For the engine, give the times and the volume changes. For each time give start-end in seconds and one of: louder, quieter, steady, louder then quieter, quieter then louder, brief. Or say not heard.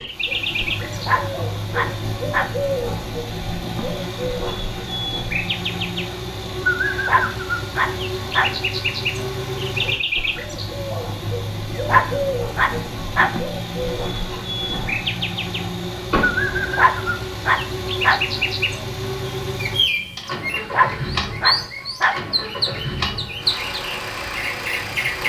0.0-25.2 steady.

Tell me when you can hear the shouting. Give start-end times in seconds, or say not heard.
not heard.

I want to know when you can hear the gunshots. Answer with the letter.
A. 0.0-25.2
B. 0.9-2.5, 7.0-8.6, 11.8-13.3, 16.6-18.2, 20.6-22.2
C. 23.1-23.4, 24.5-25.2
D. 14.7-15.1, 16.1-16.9
D.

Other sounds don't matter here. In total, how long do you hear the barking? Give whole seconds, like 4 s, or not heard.
8 s.